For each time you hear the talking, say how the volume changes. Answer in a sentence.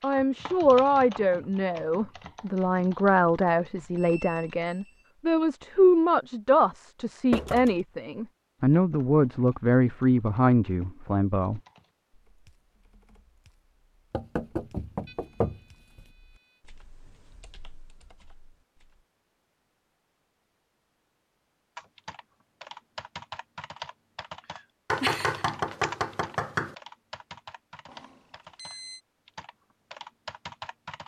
You can hear the talking from 0.0 to 11.6 s, at a steady volume.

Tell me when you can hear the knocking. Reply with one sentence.
You can hear the knocking from 7.3 to 7.8 s, from 14.1 to 16.0 s and from 24.9 to 26.8 s.